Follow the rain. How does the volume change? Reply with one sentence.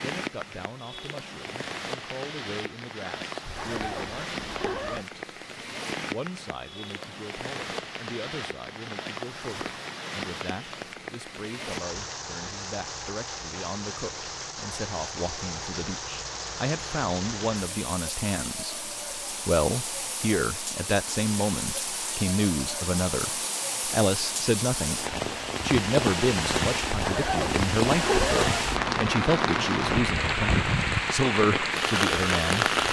The loudness of the rain goes up.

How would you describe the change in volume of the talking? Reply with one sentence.
The loudness of the talking goes up.